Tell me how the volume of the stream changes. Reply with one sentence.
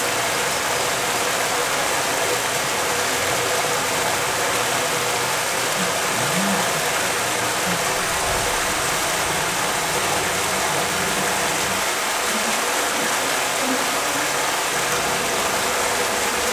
The volume of the stream stays about the same.